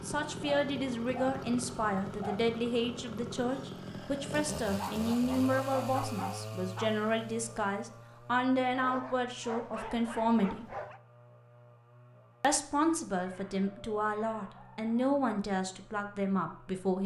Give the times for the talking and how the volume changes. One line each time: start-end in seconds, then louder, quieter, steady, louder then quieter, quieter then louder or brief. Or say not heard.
0.0-10.7 steady
12.4-17.0 steady.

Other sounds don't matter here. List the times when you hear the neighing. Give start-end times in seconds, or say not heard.
not heard.